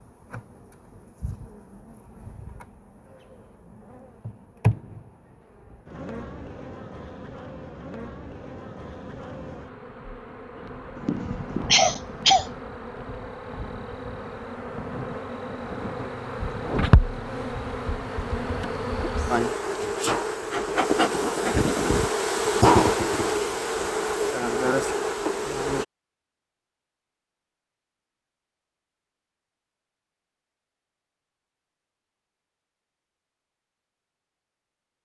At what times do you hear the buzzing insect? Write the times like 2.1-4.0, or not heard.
0.0-25.9.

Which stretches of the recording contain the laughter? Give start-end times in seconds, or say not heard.
10.9-12.4.